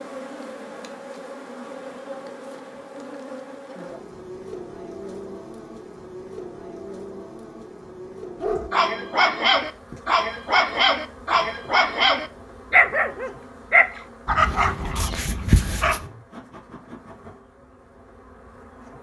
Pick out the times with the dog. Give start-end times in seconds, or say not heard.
8.4-16.1.